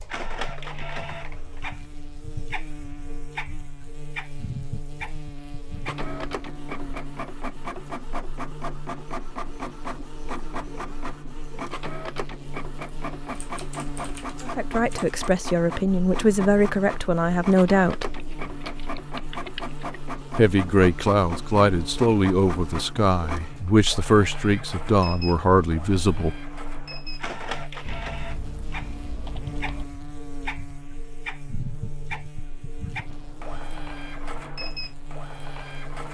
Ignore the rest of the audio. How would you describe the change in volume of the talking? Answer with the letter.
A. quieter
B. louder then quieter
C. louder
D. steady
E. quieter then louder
D.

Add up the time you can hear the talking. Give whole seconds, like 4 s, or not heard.
10 s.